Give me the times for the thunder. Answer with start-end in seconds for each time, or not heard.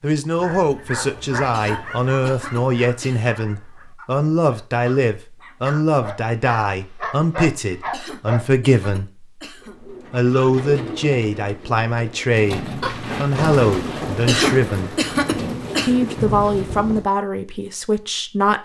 12.8-17.1.